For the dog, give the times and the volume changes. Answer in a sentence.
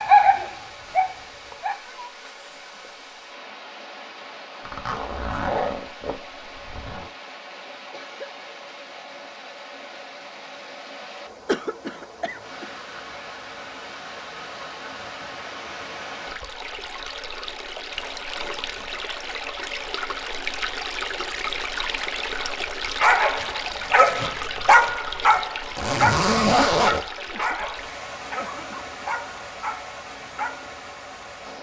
You can hear the dog briefly from 0.0 to 1.8 s; and from 23.0 to 30.7 s, getting quieter.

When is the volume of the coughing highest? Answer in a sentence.
The volume of the coughing peaks at 12 seconds.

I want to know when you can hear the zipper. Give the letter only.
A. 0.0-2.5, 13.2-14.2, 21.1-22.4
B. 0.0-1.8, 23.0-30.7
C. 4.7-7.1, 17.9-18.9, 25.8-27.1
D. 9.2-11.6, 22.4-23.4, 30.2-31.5
C.